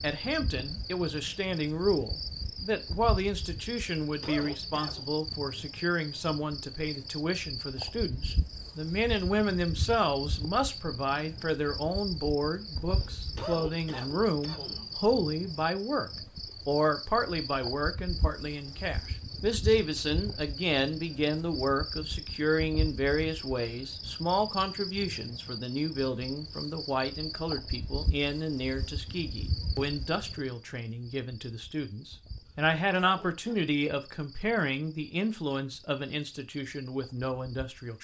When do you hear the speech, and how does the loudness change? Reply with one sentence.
You can hear the speech from 0.0 to 37.9 s, at a steady volume.